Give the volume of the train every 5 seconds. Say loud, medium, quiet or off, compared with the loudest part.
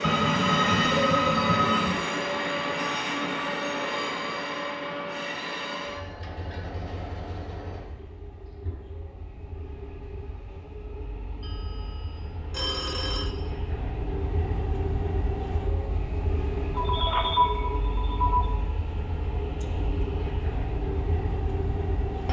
loud, medium, medium, medium, medium.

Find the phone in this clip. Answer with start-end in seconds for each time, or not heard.
0.0-2.0, 11.4-13.3, 16.8-18.5.